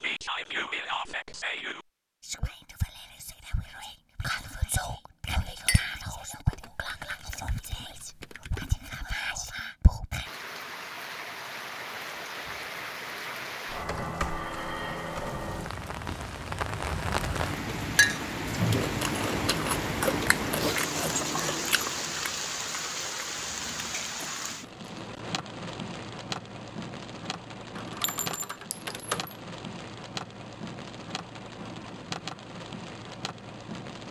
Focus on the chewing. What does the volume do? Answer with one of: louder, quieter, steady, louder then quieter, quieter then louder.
quieter.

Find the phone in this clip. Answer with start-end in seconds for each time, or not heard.
not heard.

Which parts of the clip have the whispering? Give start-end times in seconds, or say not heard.
0.0-10.3.